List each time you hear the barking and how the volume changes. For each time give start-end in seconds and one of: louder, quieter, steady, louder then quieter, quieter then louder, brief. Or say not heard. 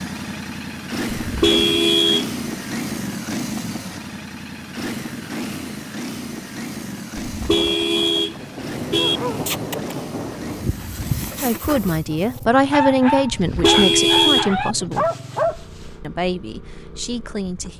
8.9-15.9 louder.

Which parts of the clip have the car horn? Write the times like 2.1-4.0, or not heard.
1.2-2.3, 7.3-9.2, 13.3-14.8.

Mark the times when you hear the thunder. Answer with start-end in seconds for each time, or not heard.
7.5-10.7.